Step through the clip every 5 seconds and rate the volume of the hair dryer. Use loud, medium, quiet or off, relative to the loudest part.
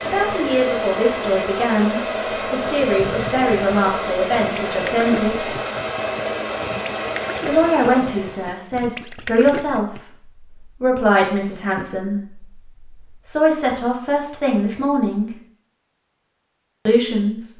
loud, loud, off, off.